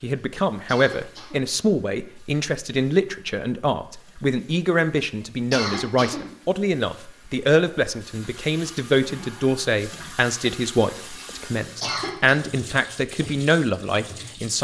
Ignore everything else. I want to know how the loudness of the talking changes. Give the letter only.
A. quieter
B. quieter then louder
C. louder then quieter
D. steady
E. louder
D.